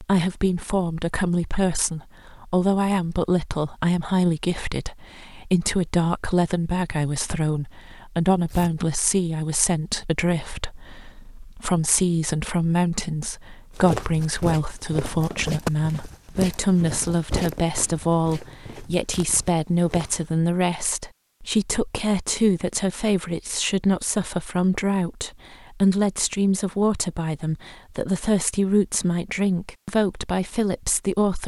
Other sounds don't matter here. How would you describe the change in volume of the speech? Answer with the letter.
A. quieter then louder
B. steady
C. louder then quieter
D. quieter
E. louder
B.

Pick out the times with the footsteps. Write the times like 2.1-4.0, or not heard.
13.8-20.2.